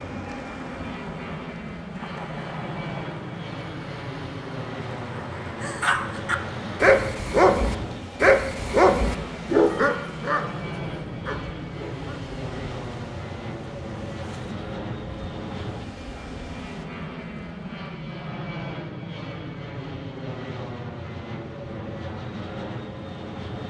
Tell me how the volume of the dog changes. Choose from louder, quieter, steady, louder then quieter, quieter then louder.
quieter.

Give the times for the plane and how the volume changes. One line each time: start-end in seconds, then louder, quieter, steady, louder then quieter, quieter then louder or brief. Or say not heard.
0.0-23.6 steady.